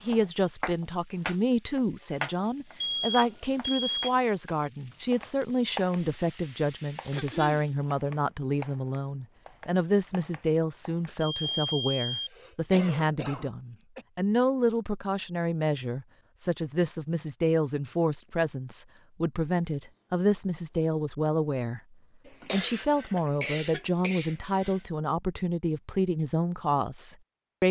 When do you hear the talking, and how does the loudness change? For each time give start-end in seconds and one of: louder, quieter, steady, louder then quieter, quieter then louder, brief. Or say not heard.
0.0-21.8 steady
22.5-27.6 steady.